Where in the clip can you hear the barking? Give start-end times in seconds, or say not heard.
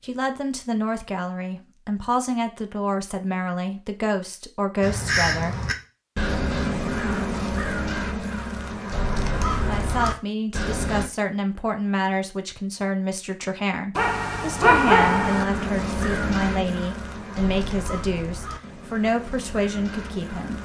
13.9-15.4.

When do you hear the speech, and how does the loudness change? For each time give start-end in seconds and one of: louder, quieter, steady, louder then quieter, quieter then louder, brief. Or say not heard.
0.0-5.6 steady
9.6-20.5 steady.